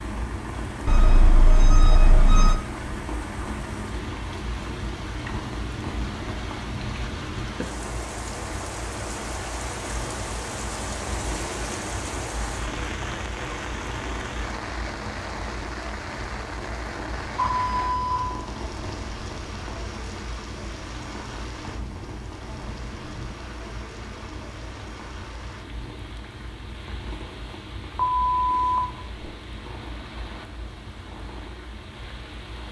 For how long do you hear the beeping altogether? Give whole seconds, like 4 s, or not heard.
4 s.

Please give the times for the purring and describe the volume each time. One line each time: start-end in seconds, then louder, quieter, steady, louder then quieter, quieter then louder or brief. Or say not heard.
0.0-32.6 quieter.